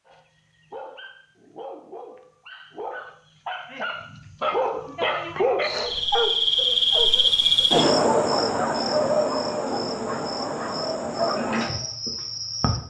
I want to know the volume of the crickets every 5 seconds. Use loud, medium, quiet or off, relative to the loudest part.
off, loud, medium.